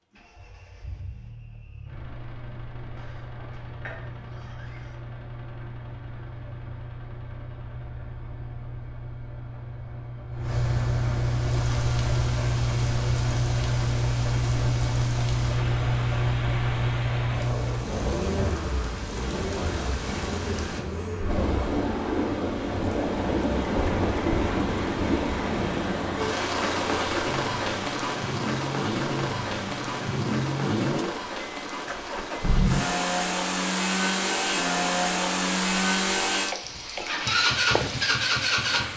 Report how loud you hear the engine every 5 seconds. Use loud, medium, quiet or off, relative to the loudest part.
quiet, quiet, loud, loud, medium, medium, loud, loud.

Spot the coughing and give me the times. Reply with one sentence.
You can hear the coughing from 3.0 to 5.0 s.